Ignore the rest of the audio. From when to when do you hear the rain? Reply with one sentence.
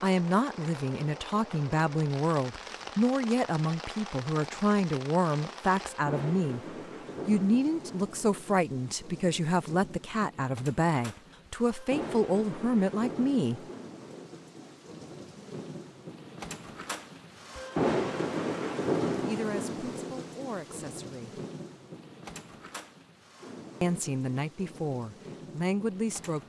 You can hear the rain from 0.0 to 26.4 s.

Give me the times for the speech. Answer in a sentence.
The speech can be heard from 0.0 to 6.6 s, from 7.2 to 13.6 s, from 19.2 to 21.4 s and from 23.8 to 26.4 s.